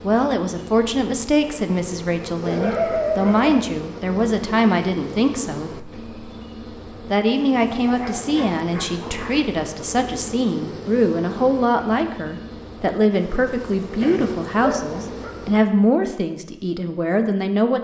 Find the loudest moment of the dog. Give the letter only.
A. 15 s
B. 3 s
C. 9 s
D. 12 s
B.